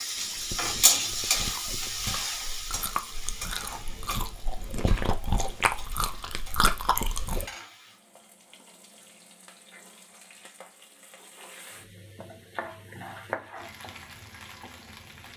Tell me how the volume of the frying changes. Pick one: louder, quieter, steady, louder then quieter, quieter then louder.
quieter then louder.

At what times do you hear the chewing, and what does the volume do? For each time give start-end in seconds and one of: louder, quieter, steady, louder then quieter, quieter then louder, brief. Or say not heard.
0.1-7.5 louder.